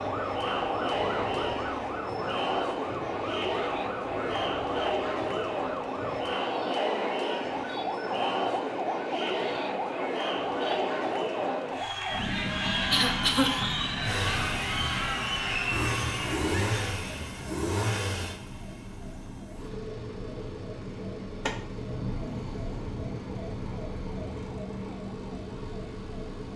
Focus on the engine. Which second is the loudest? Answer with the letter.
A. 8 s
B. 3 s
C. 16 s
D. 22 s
C.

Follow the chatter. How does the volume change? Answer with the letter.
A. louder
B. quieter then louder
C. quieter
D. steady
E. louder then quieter
D.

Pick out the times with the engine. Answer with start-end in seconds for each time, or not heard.
14.0-26.5.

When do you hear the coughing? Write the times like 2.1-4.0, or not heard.
12.9-13.8.